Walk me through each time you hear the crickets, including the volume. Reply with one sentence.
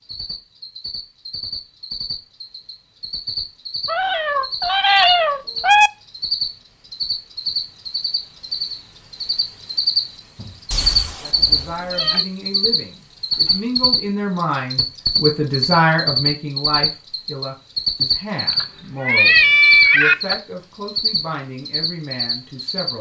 The crickets can be heard from 0.0 to 22.9 s, getting louder.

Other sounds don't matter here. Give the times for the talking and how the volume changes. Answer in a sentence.
The talking can be heard from 11.2 to 22.9 s, getting louder then quieter.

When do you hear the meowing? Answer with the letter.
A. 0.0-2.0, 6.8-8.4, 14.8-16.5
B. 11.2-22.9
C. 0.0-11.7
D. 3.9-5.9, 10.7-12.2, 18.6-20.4
D.